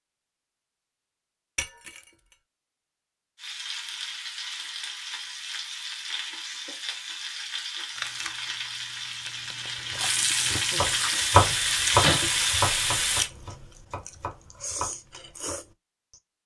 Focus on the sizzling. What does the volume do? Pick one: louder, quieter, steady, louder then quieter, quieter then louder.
louder.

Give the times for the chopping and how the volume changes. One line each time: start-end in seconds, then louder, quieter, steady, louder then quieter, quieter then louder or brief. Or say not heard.
9.9-14.9 louder then quieter.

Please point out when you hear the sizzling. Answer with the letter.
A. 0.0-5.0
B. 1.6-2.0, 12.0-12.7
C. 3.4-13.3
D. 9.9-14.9
C.